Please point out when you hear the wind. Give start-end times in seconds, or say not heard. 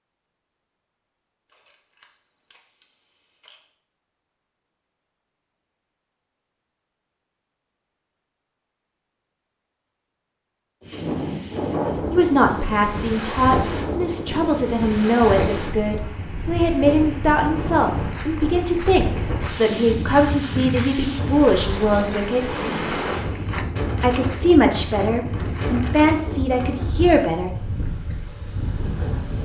10.8-29.3.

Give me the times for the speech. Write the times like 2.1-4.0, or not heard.
12.1-22.6, 24.0-27.5.